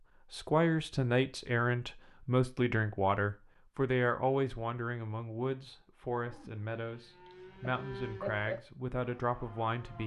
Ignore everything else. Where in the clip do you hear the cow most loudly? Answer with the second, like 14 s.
8 s.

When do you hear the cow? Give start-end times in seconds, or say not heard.
6.2-10.0.